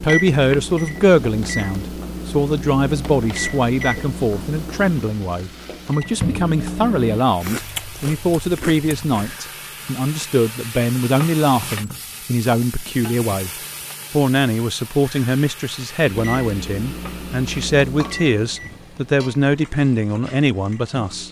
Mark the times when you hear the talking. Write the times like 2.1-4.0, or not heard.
0.0-13.5, 14.1-21.2.